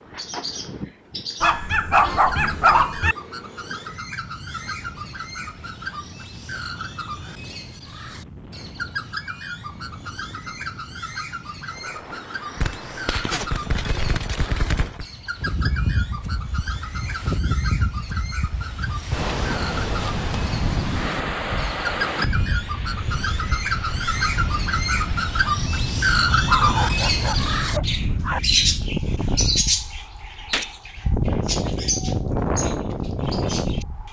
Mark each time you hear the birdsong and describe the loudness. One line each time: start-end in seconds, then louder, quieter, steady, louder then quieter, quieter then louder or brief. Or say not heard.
0.0-34.0 louder.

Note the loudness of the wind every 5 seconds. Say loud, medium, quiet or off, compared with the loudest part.
quiet, quiet, quiet, loud, loud, loud, loud.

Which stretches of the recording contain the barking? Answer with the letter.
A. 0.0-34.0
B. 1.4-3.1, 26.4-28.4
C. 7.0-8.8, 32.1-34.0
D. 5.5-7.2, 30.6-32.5
B.